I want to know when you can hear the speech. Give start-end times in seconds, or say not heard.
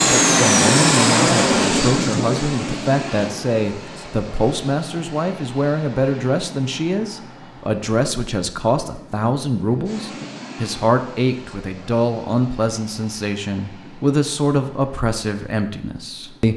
0.1-16.5.